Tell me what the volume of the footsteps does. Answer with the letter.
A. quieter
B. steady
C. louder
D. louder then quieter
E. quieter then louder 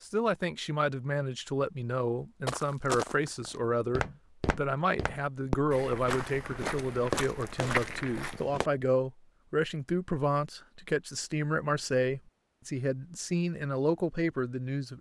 E.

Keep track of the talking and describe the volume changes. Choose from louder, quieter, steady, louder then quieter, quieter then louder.
steady.